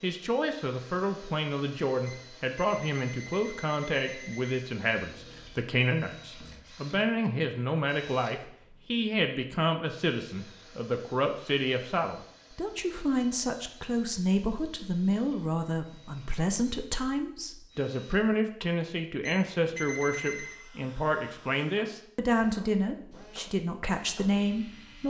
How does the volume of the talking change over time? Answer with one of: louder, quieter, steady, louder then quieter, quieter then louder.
steady.